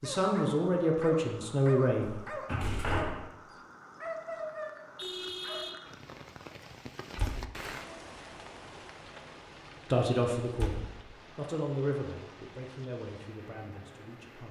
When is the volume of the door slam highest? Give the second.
3 s.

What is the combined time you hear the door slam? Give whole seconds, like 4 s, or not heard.
2 s.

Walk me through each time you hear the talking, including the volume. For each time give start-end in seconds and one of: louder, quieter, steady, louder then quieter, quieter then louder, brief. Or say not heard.
0.0-2.1 brief
9.9-14.4 quieter.